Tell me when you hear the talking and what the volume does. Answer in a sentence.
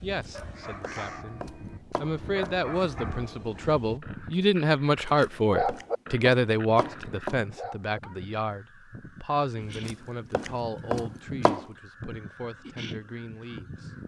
The talking can be heard from 0.0 to 13.9 s, getting louder then quieter.